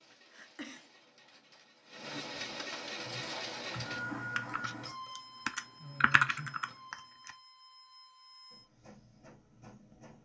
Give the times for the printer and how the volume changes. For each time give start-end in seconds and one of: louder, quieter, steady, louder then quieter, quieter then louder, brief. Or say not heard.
0.0-10.2 louder then quieter.